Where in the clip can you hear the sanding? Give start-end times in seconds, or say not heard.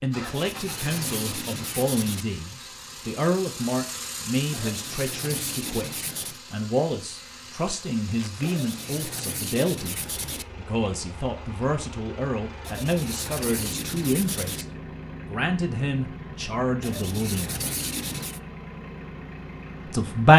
0.2-2.2, 4.5-6.4, 8.4-10.4, 12.6-14.7, 16.8-18.4.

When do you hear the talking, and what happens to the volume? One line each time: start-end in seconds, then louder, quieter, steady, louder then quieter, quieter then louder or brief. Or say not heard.
0.0-14.7 steady
15.3-17.6 brief
19.9-20.3 brief.